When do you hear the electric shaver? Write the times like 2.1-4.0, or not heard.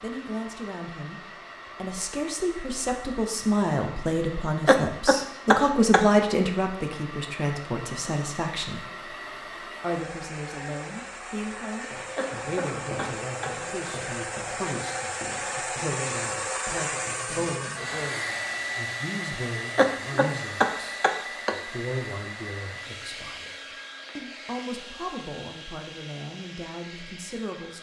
not heard.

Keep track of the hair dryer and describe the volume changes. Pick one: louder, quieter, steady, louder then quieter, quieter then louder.
louder then quieter.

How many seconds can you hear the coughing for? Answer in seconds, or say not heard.
5 s.